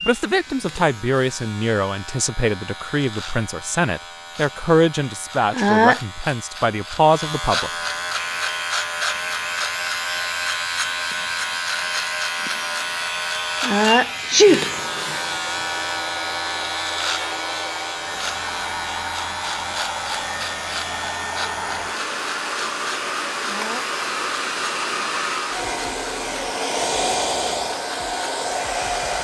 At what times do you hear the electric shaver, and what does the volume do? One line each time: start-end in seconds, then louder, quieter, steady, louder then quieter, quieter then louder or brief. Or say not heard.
0.0-29.1 louder then quieter.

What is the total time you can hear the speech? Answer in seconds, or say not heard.
8 s.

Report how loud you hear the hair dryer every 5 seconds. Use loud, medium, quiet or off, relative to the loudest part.
off, medium, medium, medium, loud, loud.